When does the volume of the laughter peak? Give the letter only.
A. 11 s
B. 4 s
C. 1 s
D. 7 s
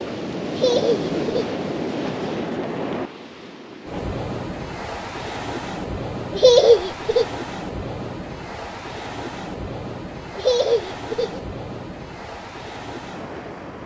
D.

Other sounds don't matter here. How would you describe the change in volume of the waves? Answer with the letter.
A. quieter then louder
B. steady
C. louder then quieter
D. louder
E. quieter
E.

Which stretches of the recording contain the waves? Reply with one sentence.
You can hear the waves from 0.0 to 13.8 s.